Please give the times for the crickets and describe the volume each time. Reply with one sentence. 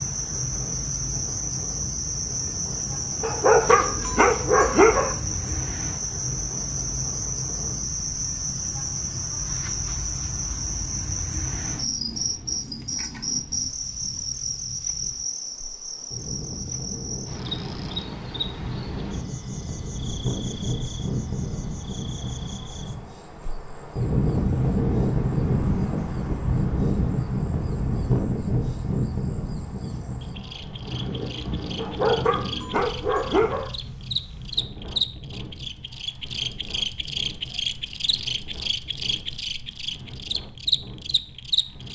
You can hear the crickets from 0.0 to 41.9 s, getting quieter then louder.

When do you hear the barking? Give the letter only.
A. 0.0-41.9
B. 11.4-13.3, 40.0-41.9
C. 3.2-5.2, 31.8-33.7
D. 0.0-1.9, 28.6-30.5
C.